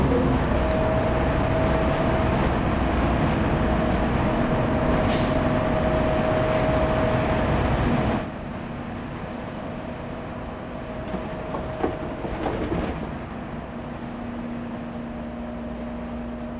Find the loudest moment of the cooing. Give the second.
13 s.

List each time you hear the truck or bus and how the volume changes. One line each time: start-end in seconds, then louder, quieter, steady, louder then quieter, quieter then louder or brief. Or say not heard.
0.0-16.5 quieter.